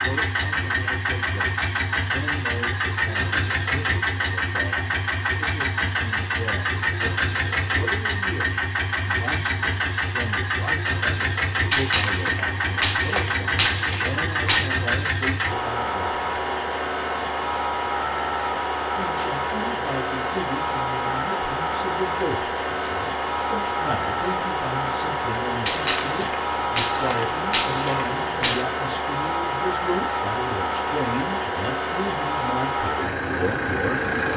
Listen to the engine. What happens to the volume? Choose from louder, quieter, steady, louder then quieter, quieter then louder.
steady.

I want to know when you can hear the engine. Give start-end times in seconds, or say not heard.
0.0-34.3.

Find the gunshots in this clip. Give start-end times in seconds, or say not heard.
11.7-14.7, 25.6-28.6.